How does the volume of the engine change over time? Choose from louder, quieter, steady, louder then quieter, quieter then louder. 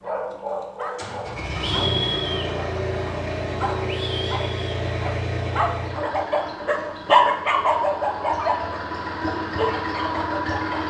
quieter then louder.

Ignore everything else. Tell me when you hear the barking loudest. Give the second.
7 s.